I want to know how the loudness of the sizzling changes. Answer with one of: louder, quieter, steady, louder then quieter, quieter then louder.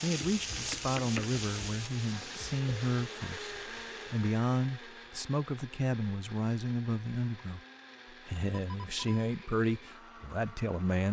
quieter.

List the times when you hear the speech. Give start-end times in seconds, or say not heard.
0.0-7.6, 8.2-11.0.